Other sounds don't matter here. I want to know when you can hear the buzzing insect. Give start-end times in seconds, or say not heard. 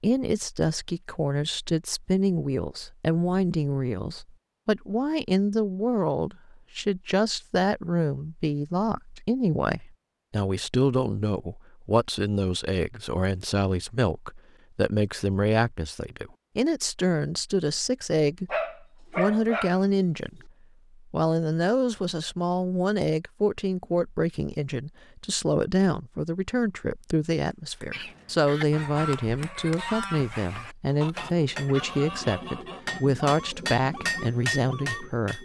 not heard.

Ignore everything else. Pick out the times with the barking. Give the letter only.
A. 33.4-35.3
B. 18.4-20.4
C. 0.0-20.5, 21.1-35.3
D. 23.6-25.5
B.